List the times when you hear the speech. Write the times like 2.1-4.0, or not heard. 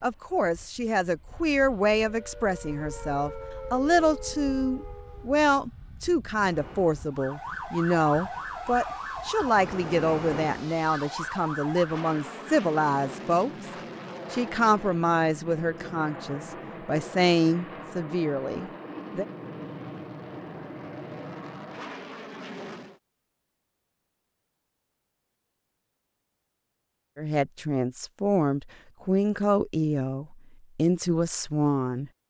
0.0-13.5, 14.3-19.2, 27.1-32.1.